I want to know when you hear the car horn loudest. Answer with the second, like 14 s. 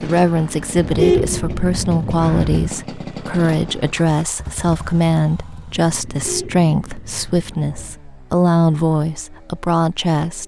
1 s.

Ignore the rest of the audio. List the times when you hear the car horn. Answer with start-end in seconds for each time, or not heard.
0.8-2.7, 6.1-8.0.